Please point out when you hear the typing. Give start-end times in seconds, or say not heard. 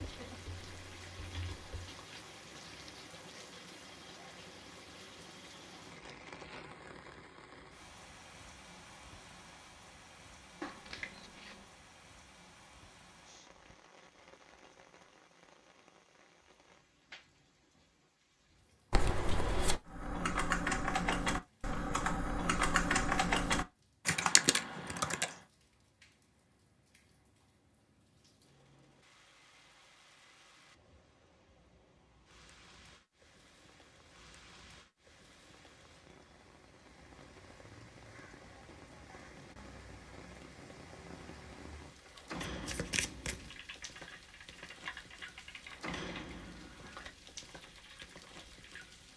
0.0-1.9, 19.9-25.4, 43.4-49.0.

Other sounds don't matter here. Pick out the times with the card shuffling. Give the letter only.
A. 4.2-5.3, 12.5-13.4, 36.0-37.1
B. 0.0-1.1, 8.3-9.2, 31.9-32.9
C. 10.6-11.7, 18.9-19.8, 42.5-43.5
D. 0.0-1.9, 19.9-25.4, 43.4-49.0
C.